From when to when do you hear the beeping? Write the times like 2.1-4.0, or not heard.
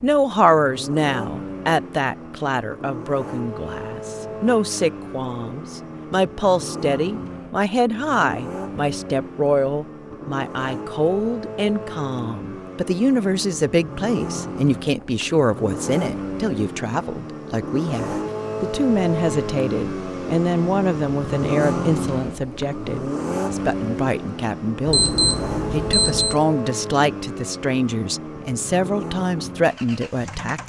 24.9-26.4.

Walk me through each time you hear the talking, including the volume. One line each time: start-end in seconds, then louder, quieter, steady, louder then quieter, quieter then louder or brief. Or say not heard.
0.0-30.6 steady.